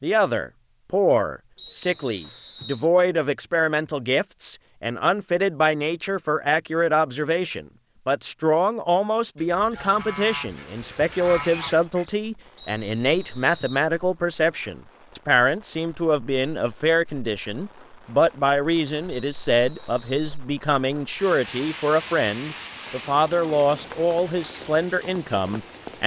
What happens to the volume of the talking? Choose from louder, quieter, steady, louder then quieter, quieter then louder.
steady.